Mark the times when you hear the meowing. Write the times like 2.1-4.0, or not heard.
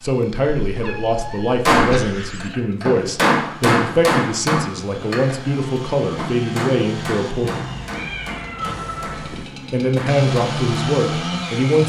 0.7-2.5, 7.4-9.4.